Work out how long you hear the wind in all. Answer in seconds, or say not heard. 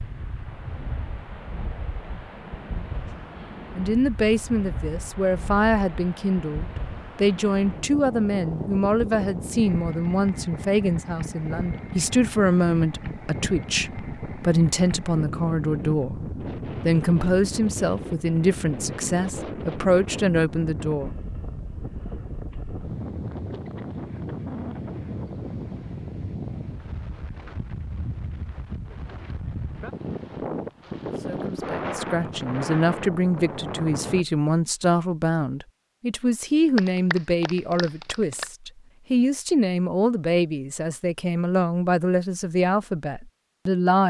34 s.